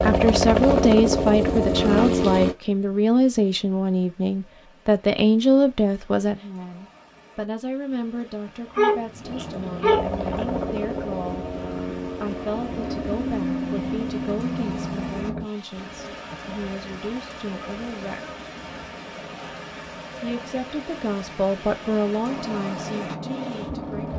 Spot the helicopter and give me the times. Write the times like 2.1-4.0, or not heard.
0.0-2.5, 9.2-15.4, 22.2-24.1.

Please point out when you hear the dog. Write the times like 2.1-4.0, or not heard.
8.8-10.6.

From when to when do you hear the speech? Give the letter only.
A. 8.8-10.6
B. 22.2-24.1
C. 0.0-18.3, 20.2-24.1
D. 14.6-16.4
C.